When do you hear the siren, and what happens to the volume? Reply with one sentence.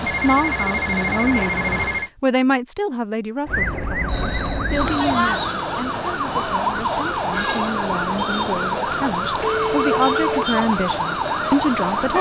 The siren can be heard from 3.5 to 12.1 s, at a steady volume.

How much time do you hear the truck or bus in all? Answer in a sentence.
You can hear the truck or bus for 2 seconds altogether.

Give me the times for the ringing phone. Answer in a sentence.
The ringing phone can be heard from 0.1 to 2.1 s, from 4.0 to 5.3 s and from 9.4 to 10.4 s.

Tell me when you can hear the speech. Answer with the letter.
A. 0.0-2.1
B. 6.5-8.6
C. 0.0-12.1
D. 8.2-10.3
C.